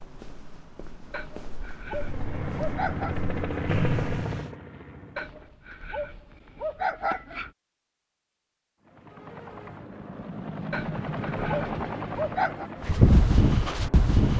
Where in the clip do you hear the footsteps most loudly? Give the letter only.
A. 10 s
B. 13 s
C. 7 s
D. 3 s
B.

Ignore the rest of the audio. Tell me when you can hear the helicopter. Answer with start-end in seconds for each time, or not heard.
1.9-5.5, 8.8-14.3.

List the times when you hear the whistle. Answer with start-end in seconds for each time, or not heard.
3.6-4.5.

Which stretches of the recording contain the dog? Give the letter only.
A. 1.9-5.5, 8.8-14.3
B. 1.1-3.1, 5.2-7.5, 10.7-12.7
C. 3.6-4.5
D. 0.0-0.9
B.